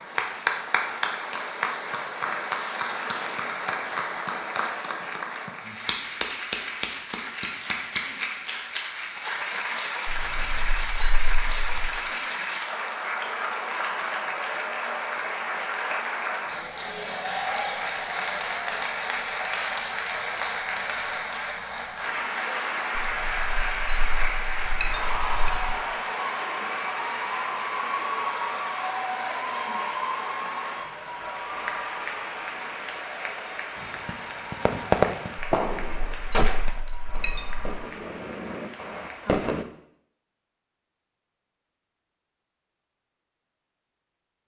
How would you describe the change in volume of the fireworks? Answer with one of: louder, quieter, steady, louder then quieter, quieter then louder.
quieter.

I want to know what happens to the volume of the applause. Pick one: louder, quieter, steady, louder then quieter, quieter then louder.
quieter.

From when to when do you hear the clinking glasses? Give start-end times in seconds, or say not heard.
10.1-11.9, 22.9-25.8, 35.4-37.8.